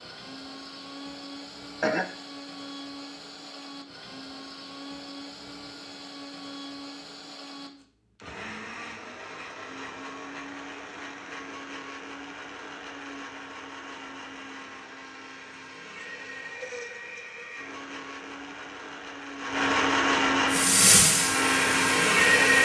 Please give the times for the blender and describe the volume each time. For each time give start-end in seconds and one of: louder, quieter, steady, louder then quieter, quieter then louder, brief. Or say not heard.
0.0-22.6 louder.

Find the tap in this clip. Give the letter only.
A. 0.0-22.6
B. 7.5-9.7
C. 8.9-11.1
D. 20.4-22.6
D.